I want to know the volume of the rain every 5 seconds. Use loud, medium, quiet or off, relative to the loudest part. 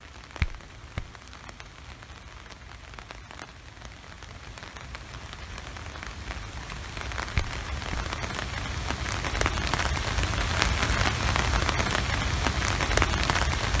quiet, medium, loud.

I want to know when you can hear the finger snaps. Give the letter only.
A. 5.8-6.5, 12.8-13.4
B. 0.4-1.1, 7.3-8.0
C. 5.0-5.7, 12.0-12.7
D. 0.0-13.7
B.